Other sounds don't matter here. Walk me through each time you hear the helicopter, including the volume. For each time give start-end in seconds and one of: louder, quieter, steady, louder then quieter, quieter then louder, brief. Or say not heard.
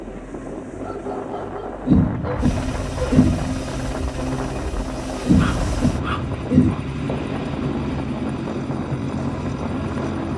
0.0-10.3 louder.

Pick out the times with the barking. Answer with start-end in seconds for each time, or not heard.
0.8-3.2, 5.3-6.8.